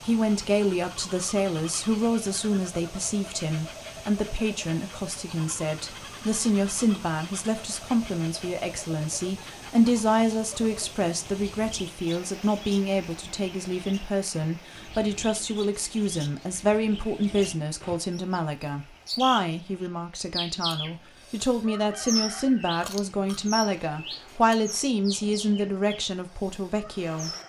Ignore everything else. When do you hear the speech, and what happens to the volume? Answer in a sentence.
The speech can be heard from 0.0 to 27.3 s, at a steady volume.